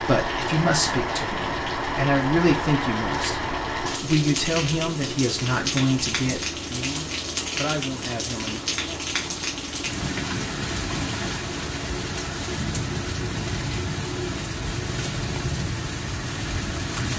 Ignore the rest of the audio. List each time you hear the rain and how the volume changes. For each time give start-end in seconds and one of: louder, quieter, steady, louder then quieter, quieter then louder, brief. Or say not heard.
0.0-17.1 steady.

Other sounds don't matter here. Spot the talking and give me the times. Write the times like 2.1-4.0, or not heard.
0.0-8.6.